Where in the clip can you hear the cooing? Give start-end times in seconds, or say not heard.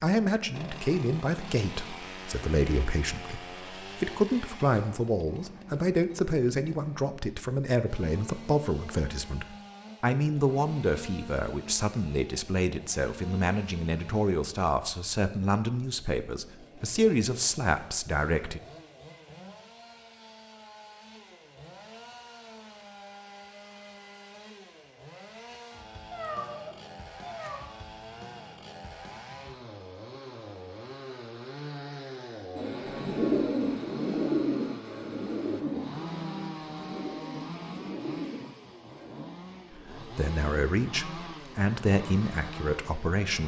32.5-39.2.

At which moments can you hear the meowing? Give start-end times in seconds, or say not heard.
26.1-27.6.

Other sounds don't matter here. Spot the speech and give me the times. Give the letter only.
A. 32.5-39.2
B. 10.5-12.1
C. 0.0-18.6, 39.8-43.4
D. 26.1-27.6
C.